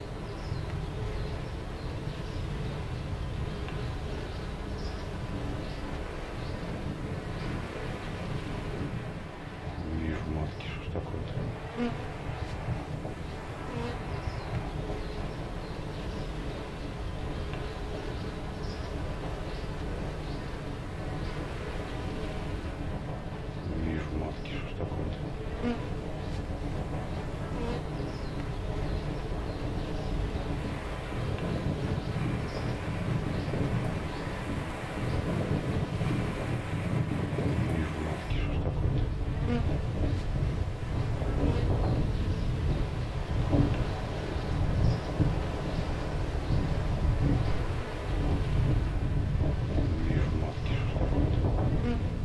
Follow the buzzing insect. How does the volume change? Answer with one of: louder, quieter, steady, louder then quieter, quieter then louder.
steady.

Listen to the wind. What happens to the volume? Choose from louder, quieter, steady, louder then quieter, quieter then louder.
louder.